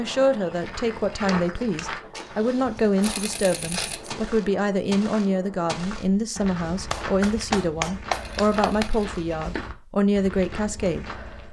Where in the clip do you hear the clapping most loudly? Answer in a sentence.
The loudest moment of the clapping is at 8 seconds.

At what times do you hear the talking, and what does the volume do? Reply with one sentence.
You can hear the talking from 0.0 to 11.4 s, at a steady volume.